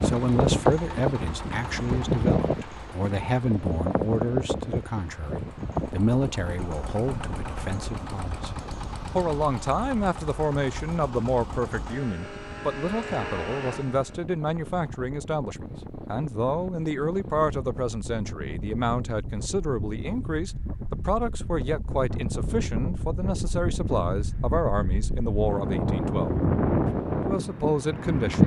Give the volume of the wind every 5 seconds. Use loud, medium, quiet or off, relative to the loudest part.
loud, quiet, quiet, quiet, medium, loud.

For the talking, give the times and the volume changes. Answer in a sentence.
You can hear the talking from 0.0 to 28.4 s, at a steady volume.